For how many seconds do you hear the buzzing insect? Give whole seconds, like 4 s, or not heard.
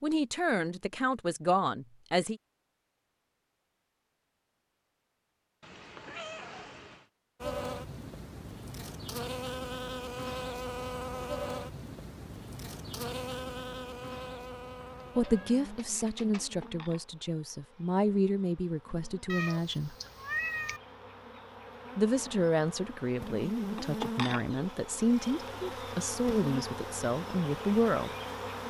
21 s.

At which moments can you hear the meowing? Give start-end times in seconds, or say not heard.
5.6-7.1, 15.1-16.6, 19.2-20.8.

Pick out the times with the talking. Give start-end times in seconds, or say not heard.
0.0-2.4, 15.2-19.9, 21.9-28.1.